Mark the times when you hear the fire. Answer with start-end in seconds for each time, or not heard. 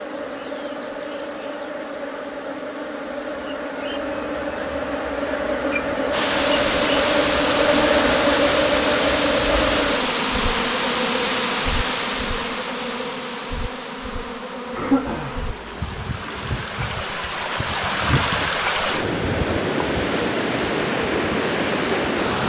not heard.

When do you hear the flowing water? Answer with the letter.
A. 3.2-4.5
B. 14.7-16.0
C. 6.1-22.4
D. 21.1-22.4
C.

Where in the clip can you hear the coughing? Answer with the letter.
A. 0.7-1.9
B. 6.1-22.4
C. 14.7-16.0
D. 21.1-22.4
C.